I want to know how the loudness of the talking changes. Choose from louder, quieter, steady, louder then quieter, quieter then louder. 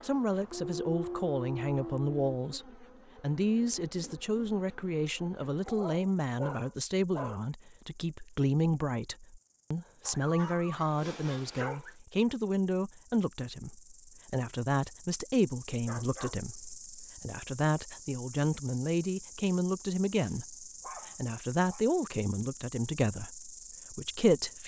steady.